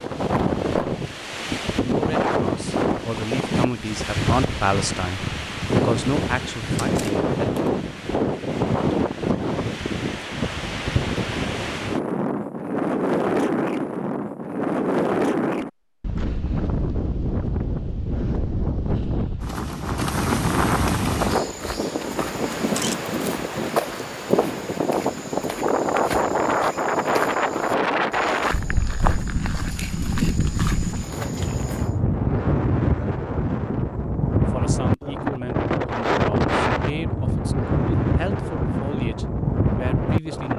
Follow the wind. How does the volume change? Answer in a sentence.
The loudness of the wind stays about the same.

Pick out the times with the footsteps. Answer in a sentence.
You can hear the footsteps from 21.2 to 31.9 s.